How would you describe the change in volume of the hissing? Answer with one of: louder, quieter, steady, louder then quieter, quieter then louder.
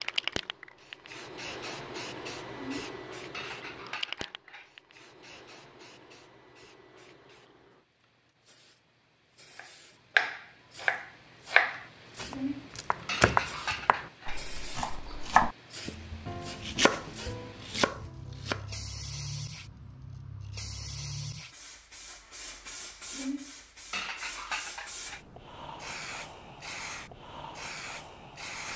quieter then louder.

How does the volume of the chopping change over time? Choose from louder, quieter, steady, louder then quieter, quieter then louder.
quieter.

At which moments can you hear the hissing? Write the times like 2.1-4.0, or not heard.
0.0-28.7.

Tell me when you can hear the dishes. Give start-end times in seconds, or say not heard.
2.5-4.7, 12.2-14.4, 23.1-25.2.